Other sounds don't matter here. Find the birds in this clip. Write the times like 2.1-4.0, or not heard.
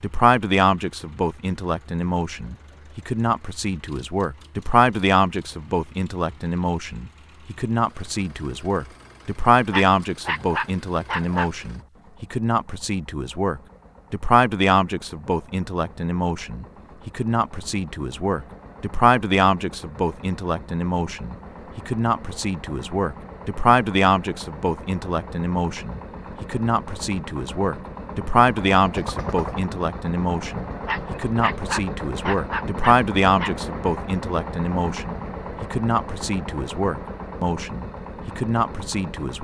not heard.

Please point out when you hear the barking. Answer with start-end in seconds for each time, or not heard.
9.7-11.5, 30.9-33.5.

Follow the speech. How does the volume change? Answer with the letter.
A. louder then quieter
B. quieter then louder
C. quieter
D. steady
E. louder
D.